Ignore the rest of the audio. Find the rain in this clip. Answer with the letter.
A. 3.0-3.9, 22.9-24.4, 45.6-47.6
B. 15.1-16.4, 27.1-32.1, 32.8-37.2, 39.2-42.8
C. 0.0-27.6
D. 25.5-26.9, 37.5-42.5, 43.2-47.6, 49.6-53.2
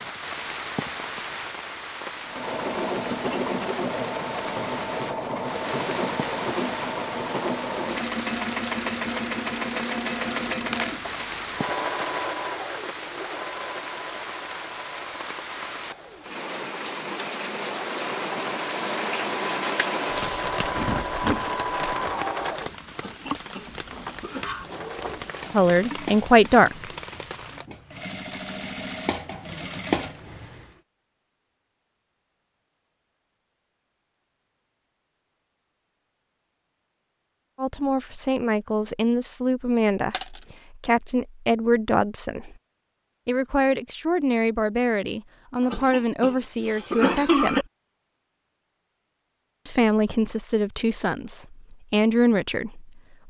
C.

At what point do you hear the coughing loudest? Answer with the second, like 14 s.
47 s.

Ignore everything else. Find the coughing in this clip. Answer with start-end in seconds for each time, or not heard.
3.0-3.9, 22.9-24.4, 45.6-47.6.